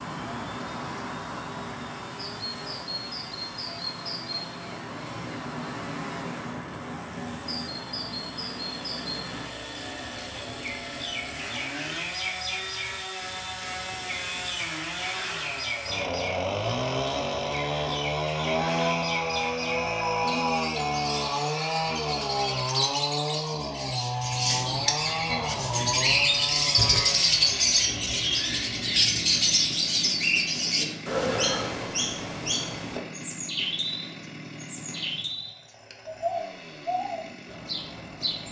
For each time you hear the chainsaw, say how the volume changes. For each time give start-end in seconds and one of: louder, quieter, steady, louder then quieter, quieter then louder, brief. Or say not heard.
0.0-38.4 louder then quieter.